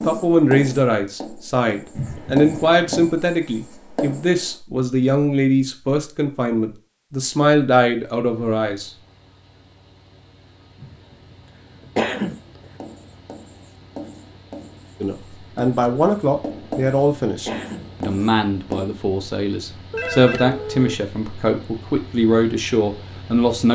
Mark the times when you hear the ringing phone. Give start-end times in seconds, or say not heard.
19.9-20.9.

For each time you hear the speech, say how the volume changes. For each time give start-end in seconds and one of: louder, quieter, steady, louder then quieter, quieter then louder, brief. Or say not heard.
0.0-8.9 steady
15.0-23.7 quieter then louder.